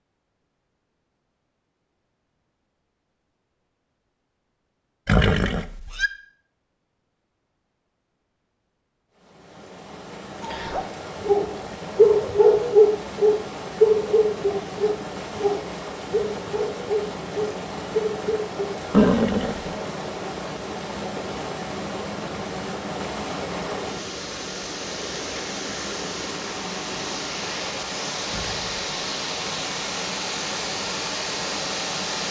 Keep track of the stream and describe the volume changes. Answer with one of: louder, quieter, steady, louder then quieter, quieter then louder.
louder.